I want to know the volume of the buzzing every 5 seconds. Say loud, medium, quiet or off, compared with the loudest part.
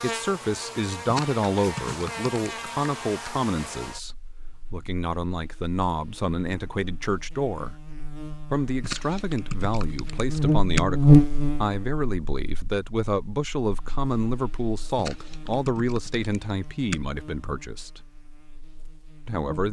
quiet, quiet, loud, quiet.